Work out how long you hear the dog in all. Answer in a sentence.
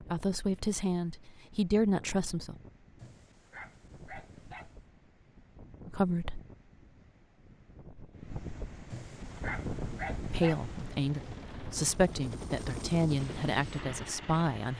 You can hear the dog for 4 seconds altogether.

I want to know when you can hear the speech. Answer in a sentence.
The speech can be heard from 0.0 to 2.5 s, from 5.8 to 6.4 s and from 10.3 to 14.7 s.